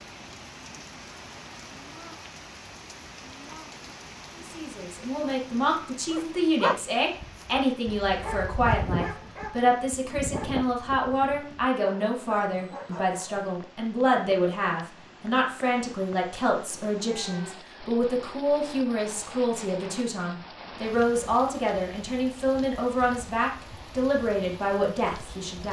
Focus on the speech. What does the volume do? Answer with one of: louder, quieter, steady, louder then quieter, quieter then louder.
steady.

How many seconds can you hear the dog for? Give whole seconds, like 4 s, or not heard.
7 s.